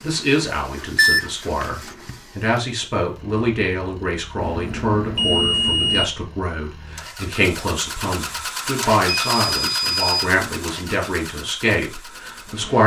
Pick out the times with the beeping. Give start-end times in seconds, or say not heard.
0.9-2.1, 4.4-6.0, 9.1-10.2.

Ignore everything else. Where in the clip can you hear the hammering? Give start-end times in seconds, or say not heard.
not heard.